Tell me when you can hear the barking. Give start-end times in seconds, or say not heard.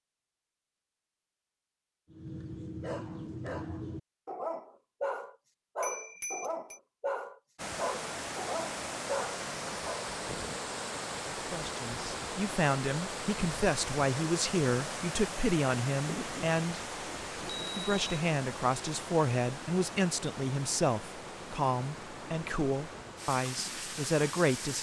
2.1-10.1.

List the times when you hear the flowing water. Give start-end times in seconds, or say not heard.
7.5-24.7.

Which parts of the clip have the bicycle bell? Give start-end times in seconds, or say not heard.
5.8-6.8, 17.4-18.2.